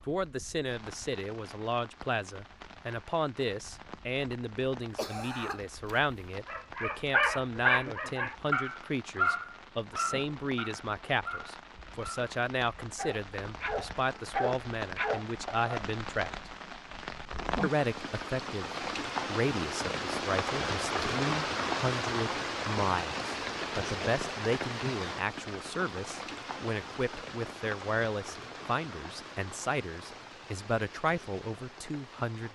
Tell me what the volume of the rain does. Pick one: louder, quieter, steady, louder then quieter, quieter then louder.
louder then quieter.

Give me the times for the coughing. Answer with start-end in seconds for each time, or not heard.
4.8-6.1.